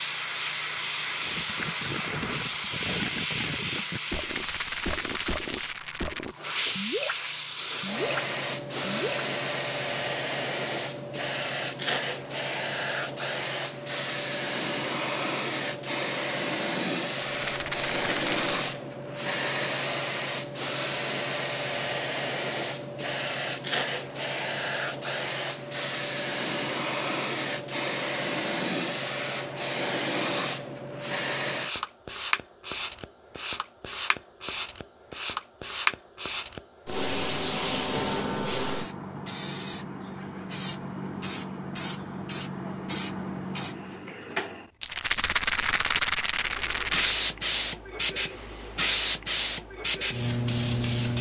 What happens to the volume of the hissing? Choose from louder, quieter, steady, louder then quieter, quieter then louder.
steady.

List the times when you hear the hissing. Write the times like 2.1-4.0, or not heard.
0.0-51.1.